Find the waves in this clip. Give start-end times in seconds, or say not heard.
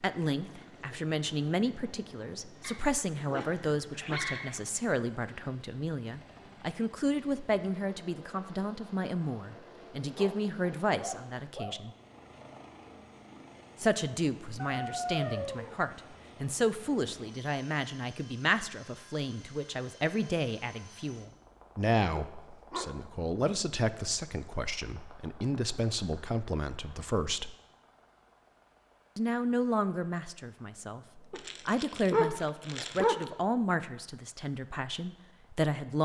not heard.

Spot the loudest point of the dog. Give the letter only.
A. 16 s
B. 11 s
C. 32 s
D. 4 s
C.